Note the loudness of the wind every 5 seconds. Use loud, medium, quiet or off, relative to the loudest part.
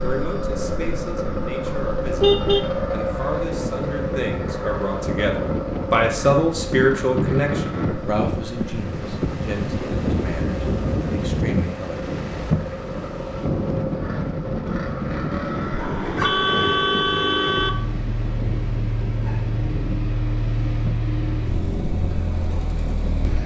medium, loud, loud, medium, medium.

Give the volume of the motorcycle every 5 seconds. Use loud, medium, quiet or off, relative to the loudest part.
loud, medium, medium, loud, loud.